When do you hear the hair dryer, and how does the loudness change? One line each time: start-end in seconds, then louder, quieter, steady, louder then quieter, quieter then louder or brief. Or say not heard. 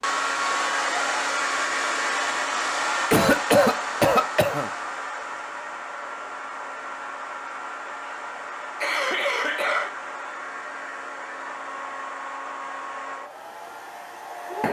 0.0-14.6 quieter.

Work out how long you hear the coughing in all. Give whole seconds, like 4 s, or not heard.
3 s.